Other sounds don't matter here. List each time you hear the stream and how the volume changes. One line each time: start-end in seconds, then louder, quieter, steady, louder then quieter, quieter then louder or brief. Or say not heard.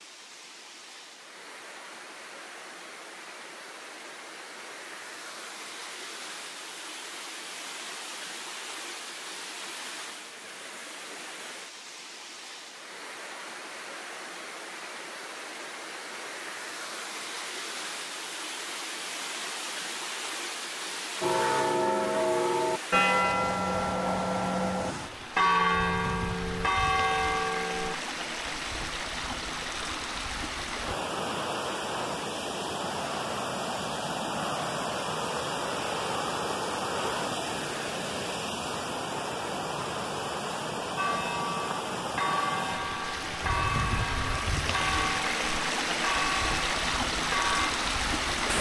0.0-48.5 louder.